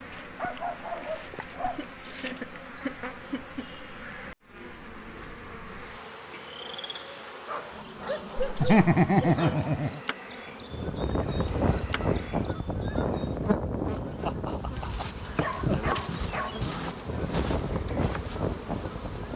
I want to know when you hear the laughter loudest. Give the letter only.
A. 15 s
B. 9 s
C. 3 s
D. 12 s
B.